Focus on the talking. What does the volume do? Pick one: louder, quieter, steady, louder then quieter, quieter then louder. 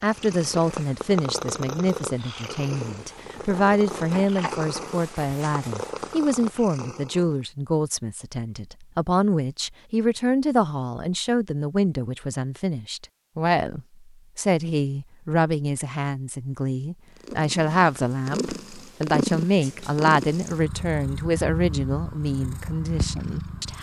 steady.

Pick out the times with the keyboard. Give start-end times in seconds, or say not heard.
not heard.